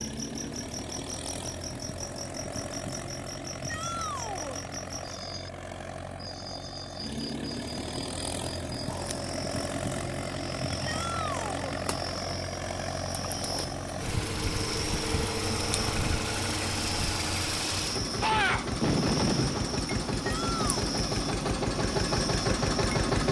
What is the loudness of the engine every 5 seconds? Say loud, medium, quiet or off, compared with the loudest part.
medium, medium, medium, loud, loud.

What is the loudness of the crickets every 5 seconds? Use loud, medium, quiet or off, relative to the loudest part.
medium, medium, loud, loud, loud.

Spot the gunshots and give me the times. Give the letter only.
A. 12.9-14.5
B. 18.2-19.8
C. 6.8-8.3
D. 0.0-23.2
B.